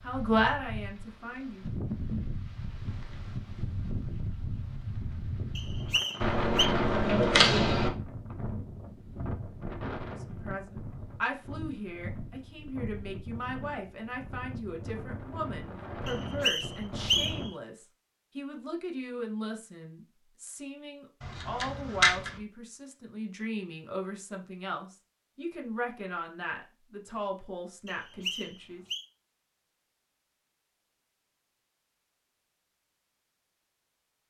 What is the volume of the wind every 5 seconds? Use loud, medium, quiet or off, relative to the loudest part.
loud, loud, medium, loud, off, off, off.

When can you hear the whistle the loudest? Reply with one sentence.
The loudest moment of the whistle is at 17 seconds.